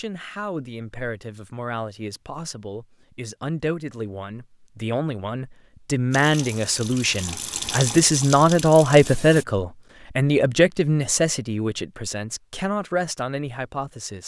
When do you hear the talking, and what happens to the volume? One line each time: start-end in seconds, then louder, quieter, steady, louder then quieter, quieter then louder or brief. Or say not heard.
0.0-14.2 louder then quieter.